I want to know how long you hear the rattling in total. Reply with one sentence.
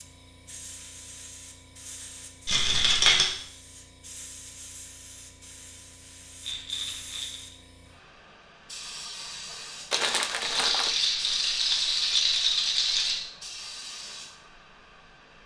You can hear the rattling for 5 seconds altogether.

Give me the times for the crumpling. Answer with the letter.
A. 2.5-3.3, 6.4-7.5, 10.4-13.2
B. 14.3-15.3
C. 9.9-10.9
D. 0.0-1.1
C.